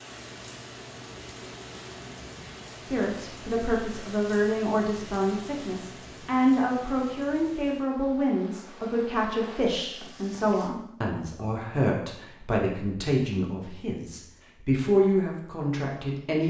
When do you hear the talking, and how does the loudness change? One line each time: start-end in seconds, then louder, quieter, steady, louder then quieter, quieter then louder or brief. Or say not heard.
2.9-16.4 steady.